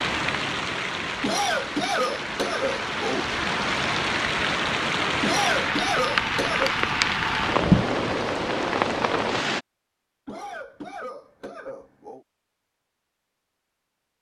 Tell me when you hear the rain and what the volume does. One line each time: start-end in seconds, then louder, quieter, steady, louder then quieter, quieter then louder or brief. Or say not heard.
0.0-9.6 louder.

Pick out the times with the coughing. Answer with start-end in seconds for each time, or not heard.
1.2-3.2, 5.2-6.7, 10.2-12.2.